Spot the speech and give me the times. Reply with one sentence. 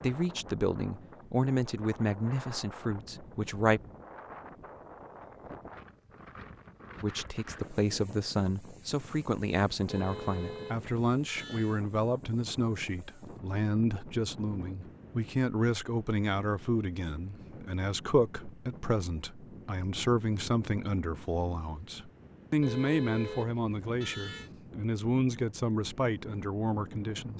You can hear the speech from 0.0 to 3.8 s and from 7.0 to 27.3 s.